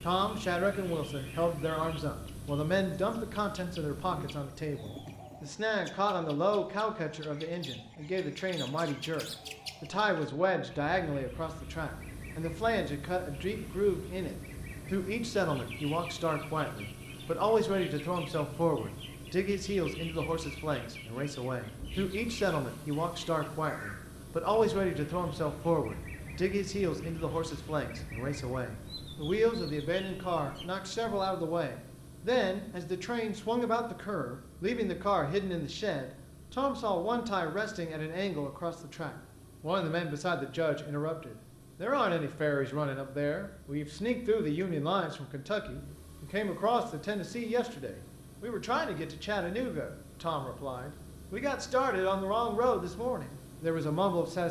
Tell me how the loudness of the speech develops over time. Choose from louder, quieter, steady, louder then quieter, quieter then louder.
steady.